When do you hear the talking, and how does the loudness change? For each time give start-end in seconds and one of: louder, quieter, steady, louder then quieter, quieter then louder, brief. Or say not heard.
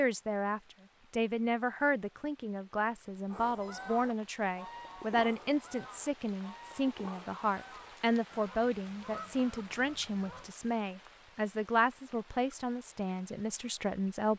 0.0-14.3 steady.